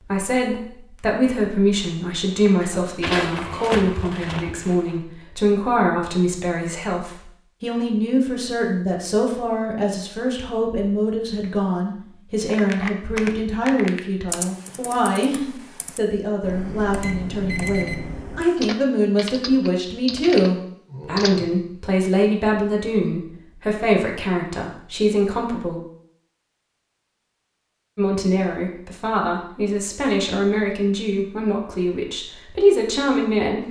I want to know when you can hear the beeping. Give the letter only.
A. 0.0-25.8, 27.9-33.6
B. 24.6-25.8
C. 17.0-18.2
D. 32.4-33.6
C.